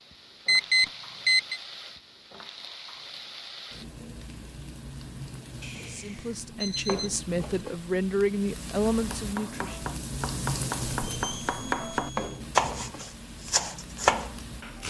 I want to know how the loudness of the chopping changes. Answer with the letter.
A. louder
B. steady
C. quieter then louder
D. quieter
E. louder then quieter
A.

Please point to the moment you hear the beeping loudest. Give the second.
1 s.